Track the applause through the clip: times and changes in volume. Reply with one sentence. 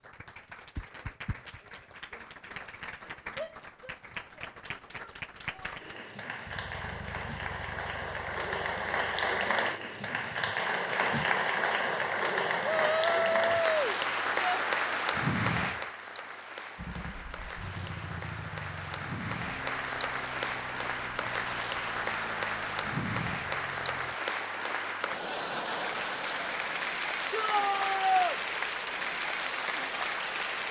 You can hear the applause from 0.0 to 30.6 s, getting louder.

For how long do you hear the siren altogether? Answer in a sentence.
You can't hear the siren here.